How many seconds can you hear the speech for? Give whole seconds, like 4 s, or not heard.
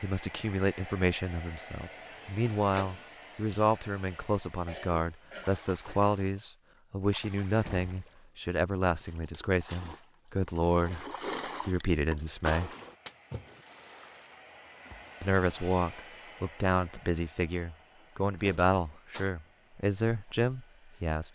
19 s.